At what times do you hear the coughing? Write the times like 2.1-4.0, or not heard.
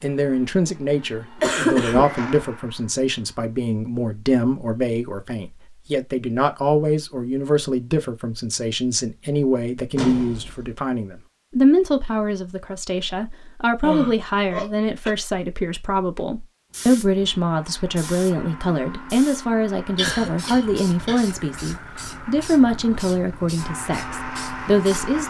1.4-2.2, 13.8-15.2, 19.9-21.4.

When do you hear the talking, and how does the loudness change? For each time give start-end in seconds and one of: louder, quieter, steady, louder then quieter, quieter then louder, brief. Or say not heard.
0.0-25.2 steady.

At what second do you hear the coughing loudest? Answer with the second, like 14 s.
2 s.